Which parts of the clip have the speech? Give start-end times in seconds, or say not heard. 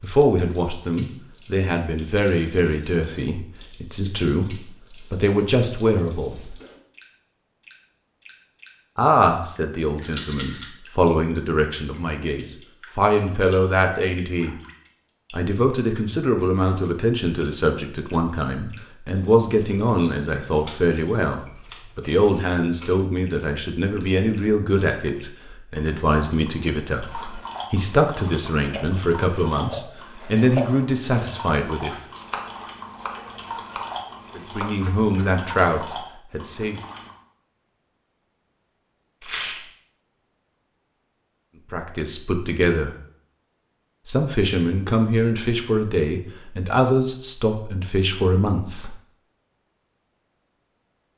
0.0-6.5, 8.9-14.6, 15.3-31.9, 34.4-36.8, 41.7-43.0, 44.0-49.0.